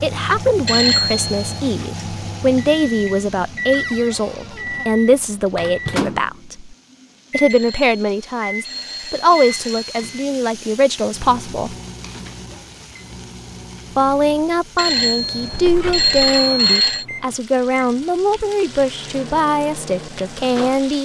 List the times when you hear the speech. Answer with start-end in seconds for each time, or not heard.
0.0-11.8, 13.9-21.0.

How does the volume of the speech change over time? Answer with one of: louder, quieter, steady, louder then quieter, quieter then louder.
steady.